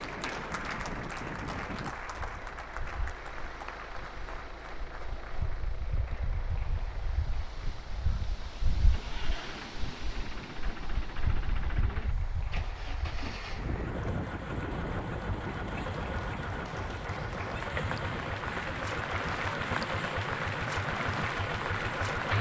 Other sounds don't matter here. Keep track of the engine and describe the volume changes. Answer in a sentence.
The volume of the engine goes up.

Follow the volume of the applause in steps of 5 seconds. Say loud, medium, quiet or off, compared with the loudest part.
medium, quiet, quiet, loud, loud.